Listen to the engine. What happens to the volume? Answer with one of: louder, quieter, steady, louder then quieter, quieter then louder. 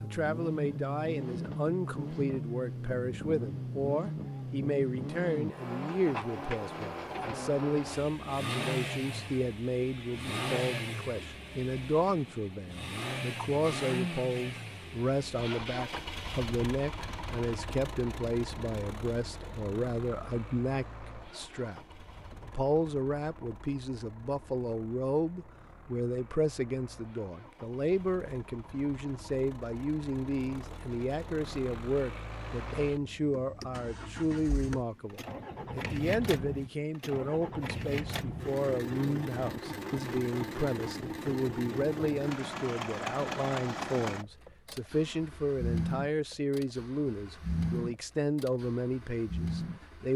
quieter then louder.